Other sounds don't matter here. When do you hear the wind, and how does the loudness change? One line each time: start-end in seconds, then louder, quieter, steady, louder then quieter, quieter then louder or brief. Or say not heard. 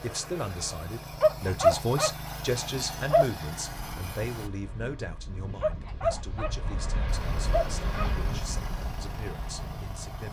3.7-10.0 louder then quieter.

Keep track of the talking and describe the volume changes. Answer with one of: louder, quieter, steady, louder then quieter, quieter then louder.
quieter.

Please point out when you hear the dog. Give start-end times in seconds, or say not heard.
1.2-3.2, 5.6-8.1.